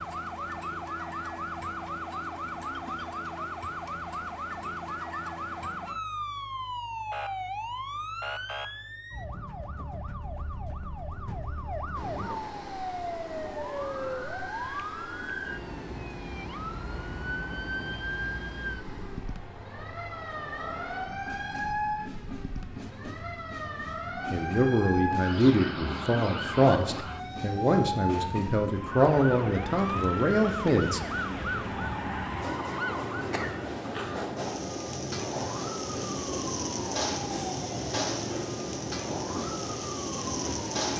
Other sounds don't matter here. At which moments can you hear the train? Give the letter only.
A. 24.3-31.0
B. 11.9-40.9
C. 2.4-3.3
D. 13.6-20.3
B.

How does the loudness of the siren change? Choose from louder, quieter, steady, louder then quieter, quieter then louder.
steady.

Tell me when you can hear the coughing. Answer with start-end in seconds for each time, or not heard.
33.3-34.2.